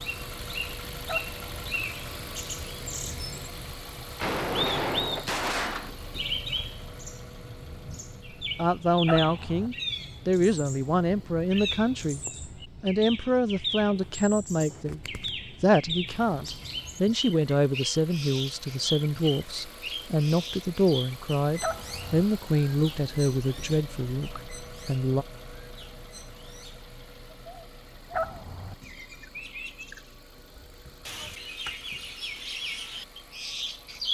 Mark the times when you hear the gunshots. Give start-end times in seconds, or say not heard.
4.2-5.9.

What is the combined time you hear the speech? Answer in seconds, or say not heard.
16 s.